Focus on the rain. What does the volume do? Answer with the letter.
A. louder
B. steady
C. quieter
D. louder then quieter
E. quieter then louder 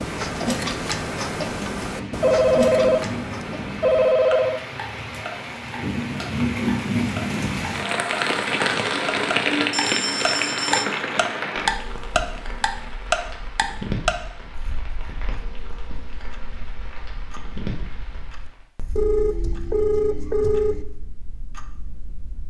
D.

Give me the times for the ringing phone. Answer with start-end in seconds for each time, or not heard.
2.2-4.6, 9.7-10.8, 18.9-20.9.